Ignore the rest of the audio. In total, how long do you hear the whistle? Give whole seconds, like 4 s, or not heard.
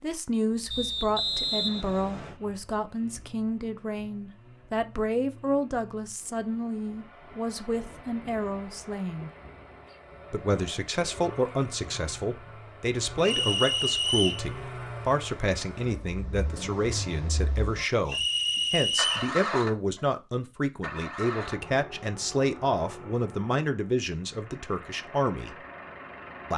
4 s.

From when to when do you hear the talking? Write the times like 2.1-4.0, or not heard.
0.0-9.3, 10.3-25.6.